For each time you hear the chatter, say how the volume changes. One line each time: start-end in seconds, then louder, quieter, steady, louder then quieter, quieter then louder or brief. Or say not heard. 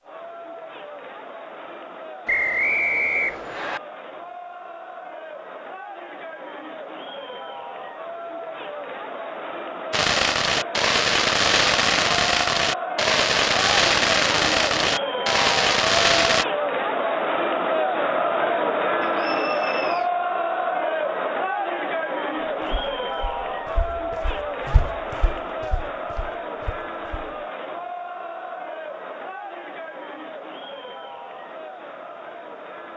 0.0-32.9 louder then quieter.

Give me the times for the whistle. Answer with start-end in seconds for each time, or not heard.
2.2-3.8, 19.0-20.1.